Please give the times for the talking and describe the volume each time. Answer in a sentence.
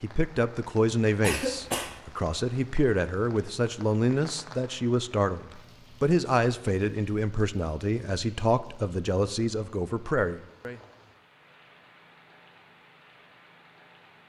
You can hear the talking from 0.0 to 10.8 s, at a steady volume.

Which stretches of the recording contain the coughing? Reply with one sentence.
You can hear the coughing from 1.2 to 2.0 s.